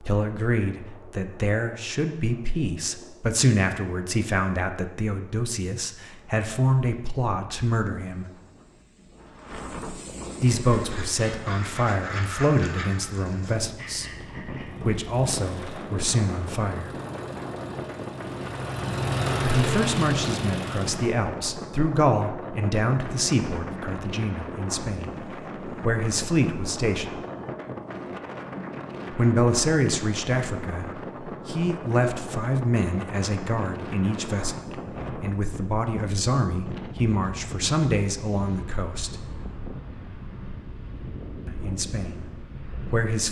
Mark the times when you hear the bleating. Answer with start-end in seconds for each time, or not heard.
not heard.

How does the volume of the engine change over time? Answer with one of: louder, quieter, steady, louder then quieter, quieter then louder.
louder.